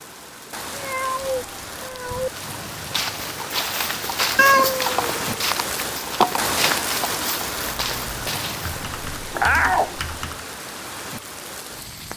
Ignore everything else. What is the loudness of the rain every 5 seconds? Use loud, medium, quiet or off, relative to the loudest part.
medium, loud, medium.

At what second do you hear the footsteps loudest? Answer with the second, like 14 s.
6 s.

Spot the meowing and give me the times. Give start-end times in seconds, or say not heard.
0.7-2.3, 4.3-5.3, 9.3-9.9.